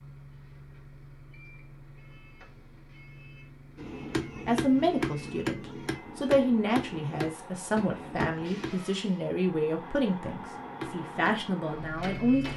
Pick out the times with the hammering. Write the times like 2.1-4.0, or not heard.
3.8-8.8, 10.6-12.5.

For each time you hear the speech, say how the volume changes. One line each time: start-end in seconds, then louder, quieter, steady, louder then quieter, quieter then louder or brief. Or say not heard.
4.5-12.5 steady.